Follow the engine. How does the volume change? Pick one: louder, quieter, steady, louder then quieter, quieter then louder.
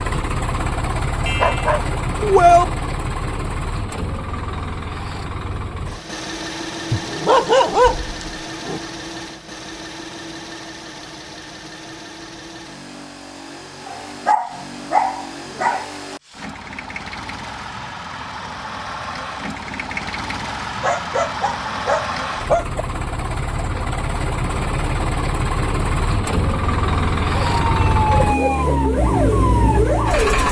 quieter then louder.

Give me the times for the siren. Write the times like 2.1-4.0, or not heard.
27.4-30.4.